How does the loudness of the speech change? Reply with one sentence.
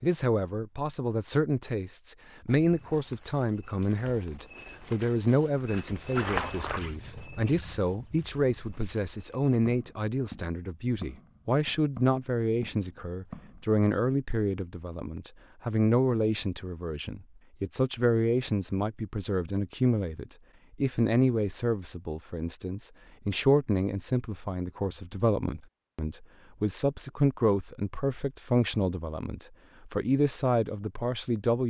The loudness of the speech stays about the same.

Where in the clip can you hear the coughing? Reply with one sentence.
The coughing can't be heard in this clip.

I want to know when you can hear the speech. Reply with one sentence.
The speech can be heard from 0.0 to 31.6 s.